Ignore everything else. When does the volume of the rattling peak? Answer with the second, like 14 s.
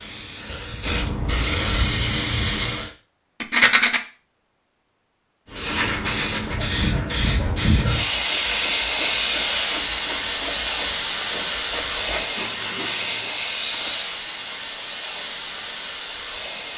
4 s.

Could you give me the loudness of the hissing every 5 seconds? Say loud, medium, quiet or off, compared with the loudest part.
loud, loud, loud, medium.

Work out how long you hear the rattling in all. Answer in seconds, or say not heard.
2 s.